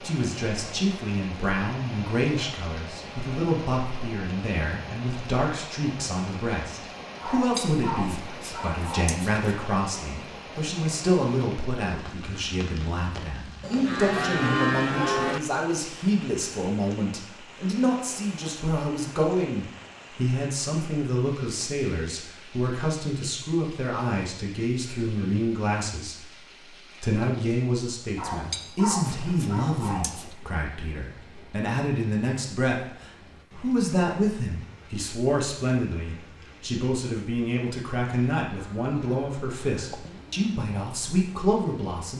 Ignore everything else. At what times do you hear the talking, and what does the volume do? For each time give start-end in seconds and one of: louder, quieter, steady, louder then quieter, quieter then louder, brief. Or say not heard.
0.0-42.1 steady.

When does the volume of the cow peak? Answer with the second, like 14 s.
15 s.